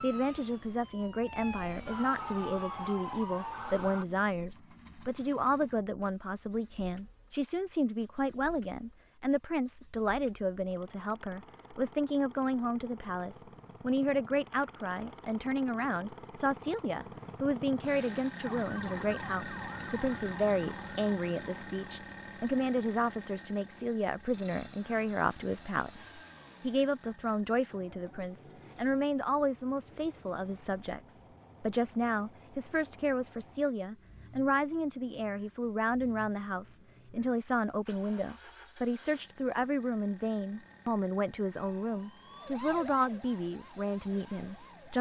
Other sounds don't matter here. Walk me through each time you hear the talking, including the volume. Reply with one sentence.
You can hear the talking from 0.0 to 44.9 s, at a steady volume.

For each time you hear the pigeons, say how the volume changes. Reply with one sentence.
The pigeons can't be heard in this clip.